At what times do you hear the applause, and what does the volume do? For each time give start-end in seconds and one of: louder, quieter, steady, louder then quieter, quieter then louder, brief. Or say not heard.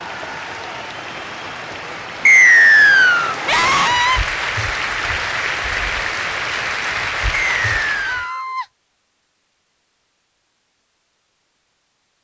0.0-8.3 louder.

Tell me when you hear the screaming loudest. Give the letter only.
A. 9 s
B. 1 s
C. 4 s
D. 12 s
C.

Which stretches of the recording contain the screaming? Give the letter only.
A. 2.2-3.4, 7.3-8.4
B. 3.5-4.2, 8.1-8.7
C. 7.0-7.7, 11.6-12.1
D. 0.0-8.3
B.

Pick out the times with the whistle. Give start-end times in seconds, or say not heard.
2.2-3.4, 7.3-8.4.